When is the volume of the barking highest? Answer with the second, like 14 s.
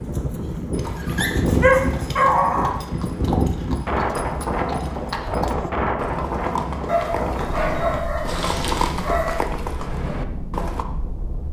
2 s.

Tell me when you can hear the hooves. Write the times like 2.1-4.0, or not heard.
0.7-10.8.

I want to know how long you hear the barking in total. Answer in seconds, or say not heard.
5 s.